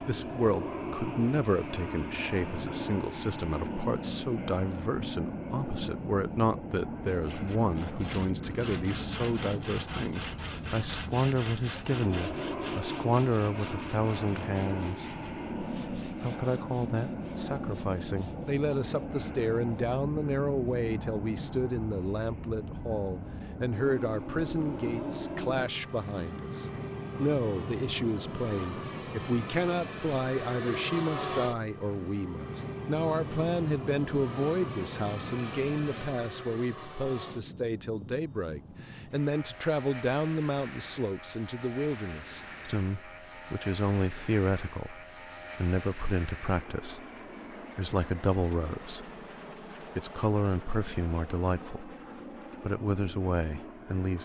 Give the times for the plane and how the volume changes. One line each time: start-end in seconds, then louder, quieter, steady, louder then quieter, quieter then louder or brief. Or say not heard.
0.0-54.1 quieter.